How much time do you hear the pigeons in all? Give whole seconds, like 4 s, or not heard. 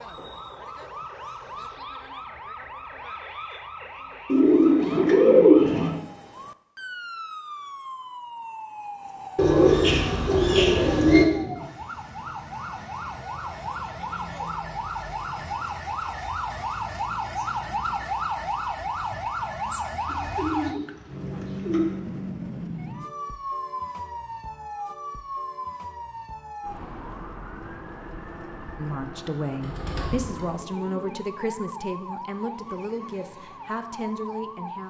7 s.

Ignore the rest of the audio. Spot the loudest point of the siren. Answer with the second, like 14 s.
18 s.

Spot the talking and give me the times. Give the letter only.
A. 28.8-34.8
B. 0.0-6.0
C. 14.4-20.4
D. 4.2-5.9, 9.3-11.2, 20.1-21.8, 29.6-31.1
A.